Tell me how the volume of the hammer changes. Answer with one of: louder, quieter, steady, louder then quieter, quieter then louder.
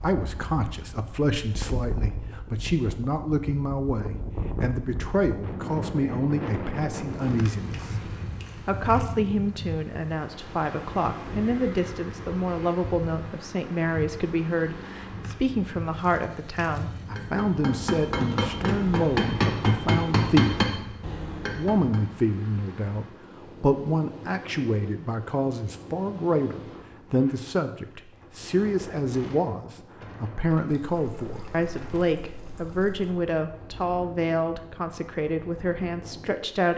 louder then quieter.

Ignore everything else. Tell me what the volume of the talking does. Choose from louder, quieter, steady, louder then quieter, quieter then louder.
steady.